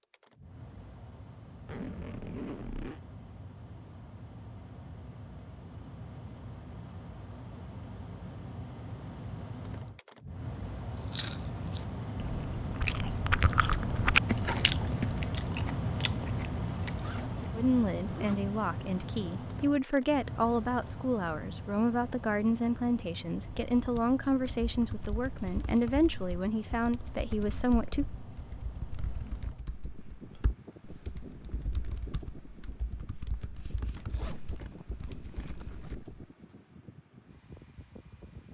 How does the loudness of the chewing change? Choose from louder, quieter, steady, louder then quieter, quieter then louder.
louder then quieter.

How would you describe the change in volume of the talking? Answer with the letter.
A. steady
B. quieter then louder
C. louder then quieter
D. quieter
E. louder
A.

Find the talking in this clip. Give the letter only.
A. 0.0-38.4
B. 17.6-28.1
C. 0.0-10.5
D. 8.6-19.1
B.